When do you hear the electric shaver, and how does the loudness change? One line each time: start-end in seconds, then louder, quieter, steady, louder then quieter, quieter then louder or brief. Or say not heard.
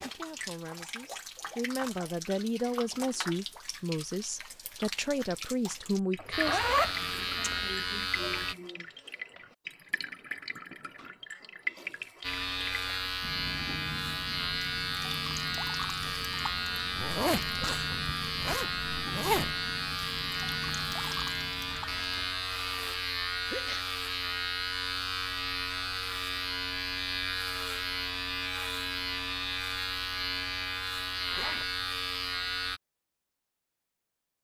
6.3-8.6 brief
12.2-32.8 steady.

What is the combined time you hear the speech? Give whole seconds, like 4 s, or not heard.
7 s.